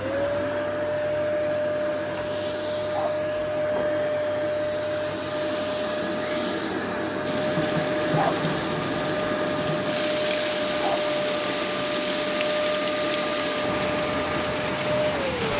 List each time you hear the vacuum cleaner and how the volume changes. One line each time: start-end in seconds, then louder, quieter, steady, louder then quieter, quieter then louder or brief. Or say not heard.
0.0-15.5 steady.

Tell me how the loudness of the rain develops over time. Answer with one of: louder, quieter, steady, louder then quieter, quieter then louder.
steady.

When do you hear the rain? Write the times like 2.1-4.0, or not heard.
7.2-15.5.